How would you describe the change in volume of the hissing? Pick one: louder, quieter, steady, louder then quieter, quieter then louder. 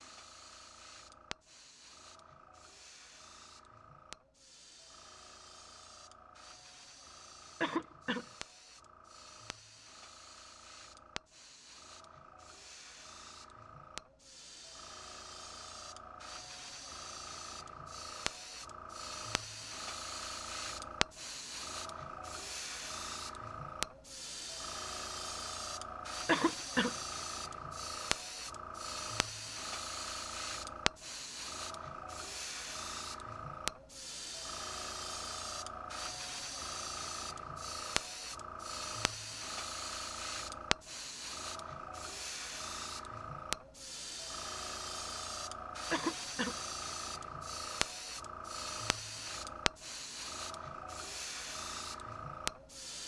louder.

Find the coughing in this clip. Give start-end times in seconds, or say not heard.
7.6-8.2, 26.2-26.9, 45.9-46.5.